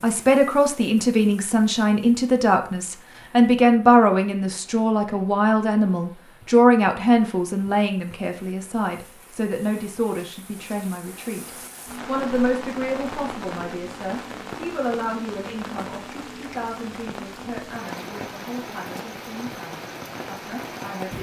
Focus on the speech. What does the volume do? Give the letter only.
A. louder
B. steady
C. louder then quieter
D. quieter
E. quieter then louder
D.